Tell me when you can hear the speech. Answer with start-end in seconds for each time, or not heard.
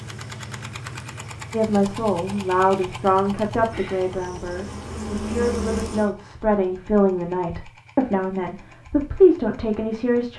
1.5-10.3.